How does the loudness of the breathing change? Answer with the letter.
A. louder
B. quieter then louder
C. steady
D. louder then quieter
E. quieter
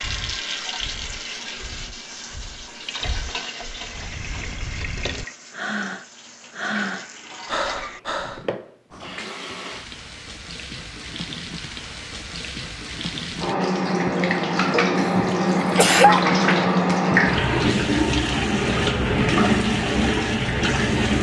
A.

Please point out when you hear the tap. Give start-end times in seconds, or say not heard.
0.0-21.1.